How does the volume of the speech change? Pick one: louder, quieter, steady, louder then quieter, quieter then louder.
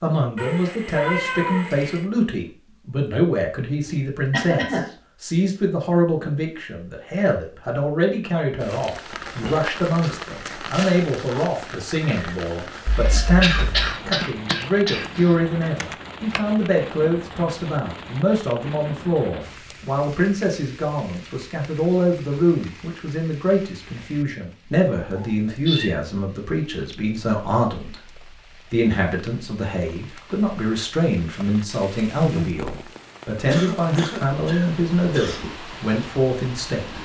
steady.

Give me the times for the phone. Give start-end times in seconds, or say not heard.
not heard.